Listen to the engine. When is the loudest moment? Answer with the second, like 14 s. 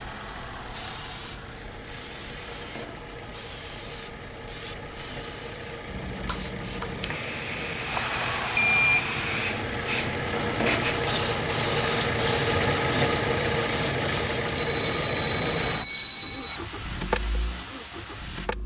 13 s.